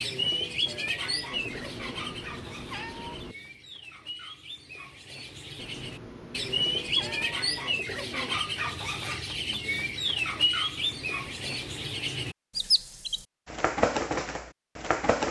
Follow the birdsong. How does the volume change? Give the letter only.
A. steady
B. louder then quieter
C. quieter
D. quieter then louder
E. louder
D.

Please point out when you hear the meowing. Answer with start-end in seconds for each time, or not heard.
1.3-3.4, 5.5-7.4, 10.8-11.9.